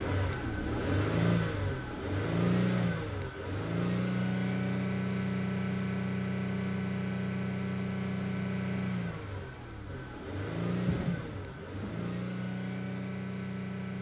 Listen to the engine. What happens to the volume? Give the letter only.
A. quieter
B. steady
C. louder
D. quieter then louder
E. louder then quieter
A.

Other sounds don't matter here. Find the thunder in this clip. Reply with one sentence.
You can hear the thunder from 10.8 to 12.1 s.